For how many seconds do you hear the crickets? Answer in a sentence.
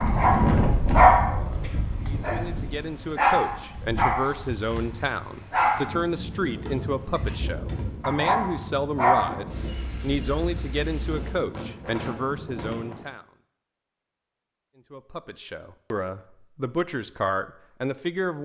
The crickets can be heard for 11 seconds in total.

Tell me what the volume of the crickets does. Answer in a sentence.
The volume of the crickets goes down.